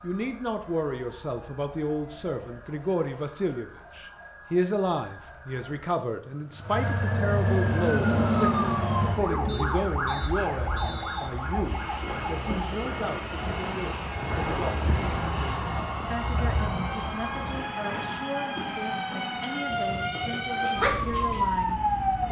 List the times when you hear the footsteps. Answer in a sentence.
The footsteps can't be heard in this clip.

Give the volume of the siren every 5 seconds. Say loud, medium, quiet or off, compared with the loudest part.
quiet, loud, medium, medium, loud.